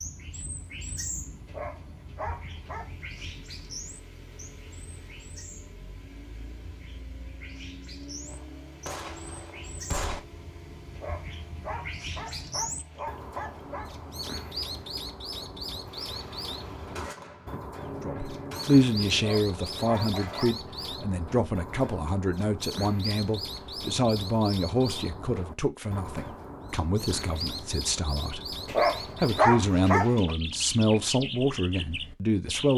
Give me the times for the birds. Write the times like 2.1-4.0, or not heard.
0.0-32.7.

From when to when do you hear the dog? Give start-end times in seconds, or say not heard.
1.4-2.9, 10.9-13.9, 19.1-20.6, 28.6-30.4.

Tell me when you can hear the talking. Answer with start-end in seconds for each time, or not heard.
18.0-28.6, 29.2-32.7.